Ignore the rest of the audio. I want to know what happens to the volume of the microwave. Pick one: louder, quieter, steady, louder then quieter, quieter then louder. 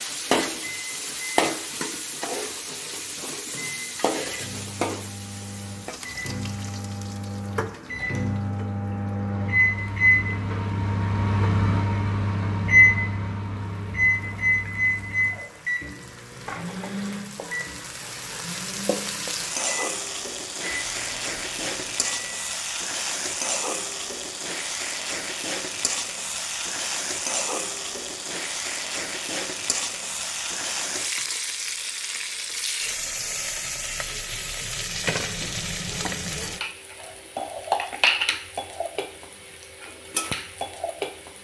louder then quieter.